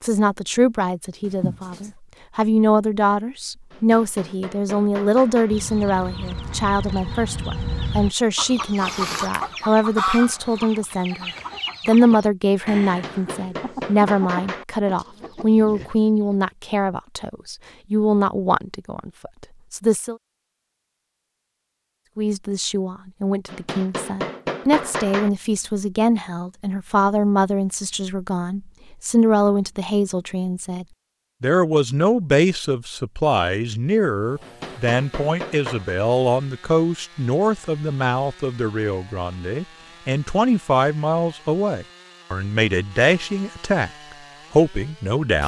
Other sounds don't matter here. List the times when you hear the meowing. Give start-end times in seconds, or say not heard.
1.2-1.9.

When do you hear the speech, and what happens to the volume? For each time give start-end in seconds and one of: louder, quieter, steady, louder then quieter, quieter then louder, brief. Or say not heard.
0.0-20.1 steady
22.1-43.9 steady
44.5-45.4 brief.